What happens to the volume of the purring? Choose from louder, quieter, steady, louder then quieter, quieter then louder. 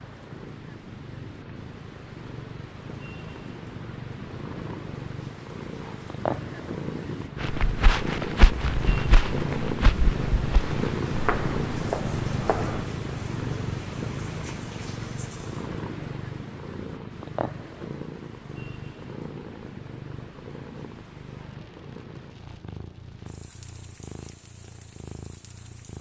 louder then quieter.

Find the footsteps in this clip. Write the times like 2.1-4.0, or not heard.
7.4-12.8.